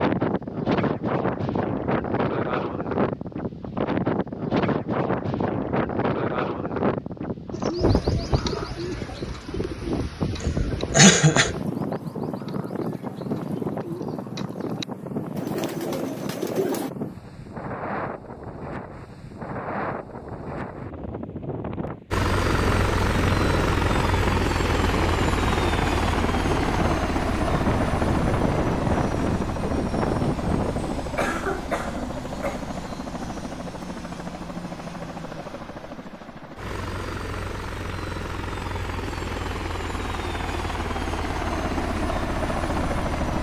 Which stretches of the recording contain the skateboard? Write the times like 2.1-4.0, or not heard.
not heard.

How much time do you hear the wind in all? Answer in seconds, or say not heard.
31 s.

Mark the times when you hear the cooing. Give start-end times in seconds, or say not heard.
7.5-16.9.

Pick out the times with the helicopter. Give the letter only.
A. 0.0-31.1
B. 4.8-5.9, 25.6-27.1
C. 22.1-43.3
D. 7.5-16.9
C.